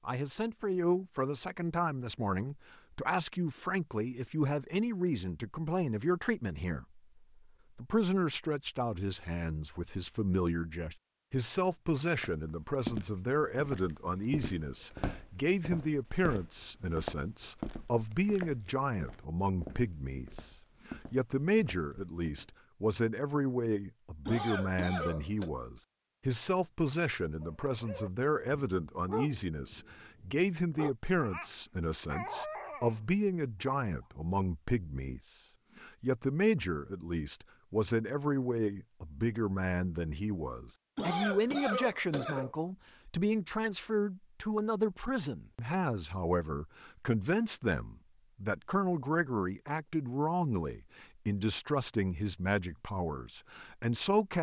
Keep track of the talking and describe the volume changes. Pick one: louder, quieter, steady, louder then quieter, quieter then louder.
steady.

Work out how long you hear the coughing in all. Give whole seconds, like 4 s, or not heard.
3 s.